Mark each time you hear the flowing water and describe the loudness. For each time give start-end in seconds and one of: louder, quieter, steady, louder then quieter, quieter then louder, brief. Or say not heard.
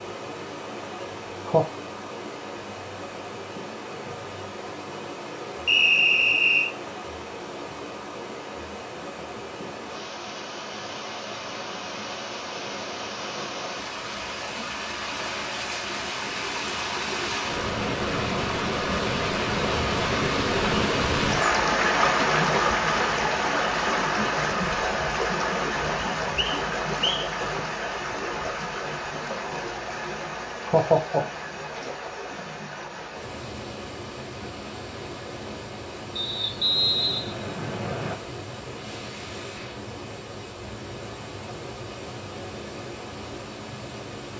0.0-44.3 louder then quieter.